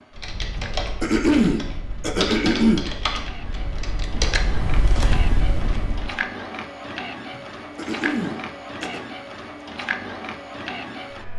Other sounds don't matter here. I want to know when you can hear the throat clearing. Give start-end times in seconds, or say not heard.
0.6-2.8, 7.3-9.1.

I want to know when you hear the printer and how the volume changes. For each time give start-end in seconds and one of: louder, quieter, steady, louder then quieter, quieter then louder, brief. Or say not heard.
0.0-11.3 louder.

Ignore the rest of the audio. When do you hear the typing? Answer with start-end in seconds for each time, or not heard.
0.1-6.2.